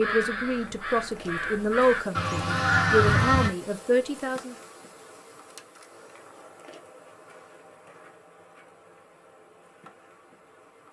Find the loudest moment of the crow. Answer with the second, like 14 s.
3 s.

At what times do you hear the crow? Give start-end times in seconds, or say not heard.
0.0-3.5.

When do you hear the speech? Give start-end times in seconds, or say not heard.
0.0-4.5.